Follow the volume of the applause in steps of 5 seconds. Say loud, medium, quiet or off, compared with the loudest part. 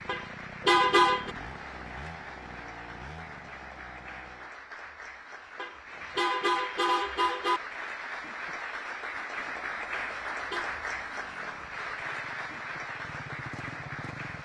medium, loud, loud.